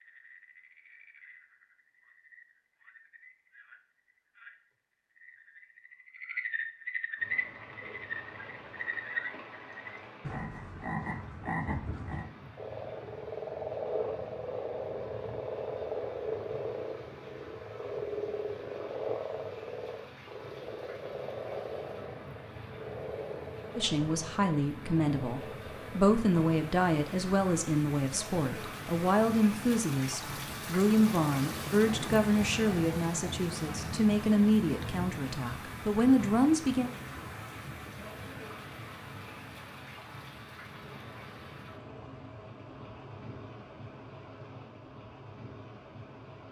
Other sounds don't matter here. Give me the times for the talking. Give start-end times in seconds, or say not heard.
23.8-36.9.